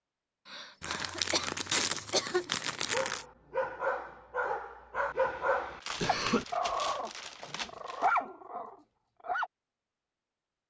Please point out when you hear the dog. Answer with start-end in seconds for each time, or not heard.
2.9-9.5.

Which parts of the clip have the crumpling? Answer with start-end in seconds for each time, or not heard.
0.8-3.2, 5.8-8.2.